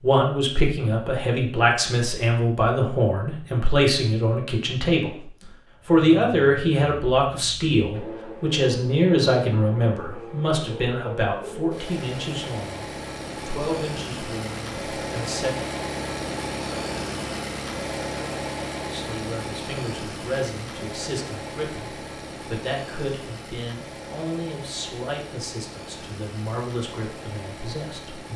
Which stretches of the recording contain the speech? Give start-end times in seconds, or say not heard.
0.0-12.8, 13.4-15.6, 18.9-28.3.